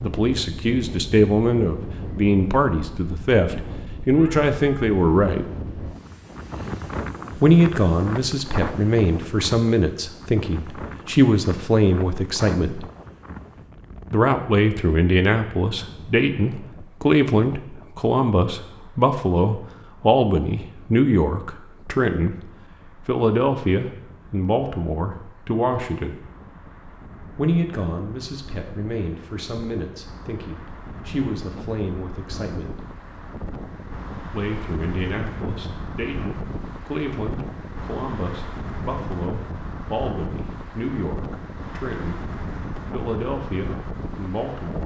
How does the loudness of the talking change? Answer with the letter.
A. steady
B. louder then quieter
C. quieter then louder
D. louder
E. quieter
E.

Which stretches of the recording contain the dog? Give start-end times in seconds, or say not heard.
not heard.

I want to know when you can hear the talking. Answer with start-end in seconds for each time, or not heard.
0.0-5.5, 7.3-12.8, 14.1-22.4, 23.1-26.1, 27.4-32.9, 34.3-44.8.